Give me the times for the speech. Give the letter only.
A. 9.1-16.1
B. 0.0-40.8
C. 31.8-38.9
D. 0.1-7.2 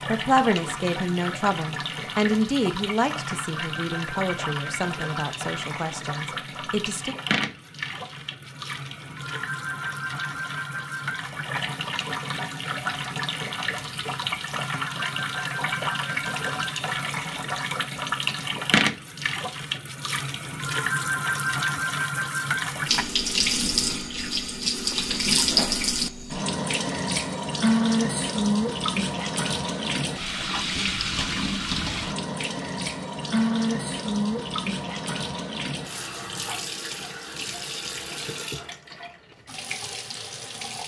D.